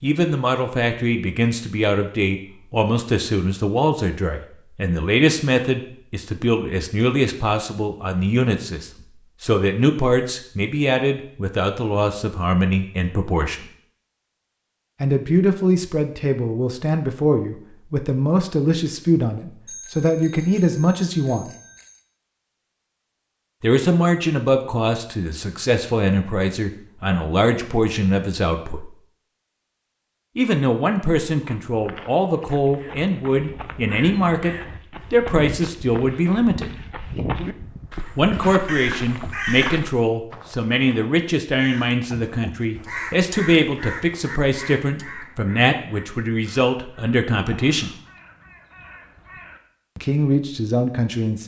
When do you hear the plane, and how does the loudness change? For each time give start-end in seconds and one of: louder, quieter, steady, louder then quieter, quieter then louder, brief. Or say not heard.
not heard.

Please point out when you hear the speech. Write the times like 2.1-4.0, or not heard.
0.0-13.7, 15.0-21.5, 23.6-28.9, 30.4-36.8, 38.1-48.0, 50.0-51.4.